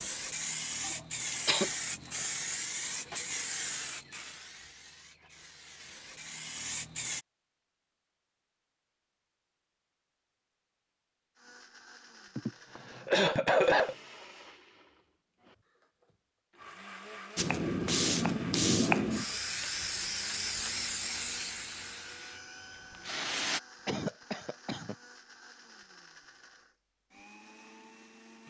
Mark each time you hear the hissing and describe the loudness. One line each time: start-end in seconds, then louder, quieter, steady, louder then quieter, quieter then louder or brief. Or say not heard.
0.0-7.2 quieter then louder
17.4-23.6 quieter.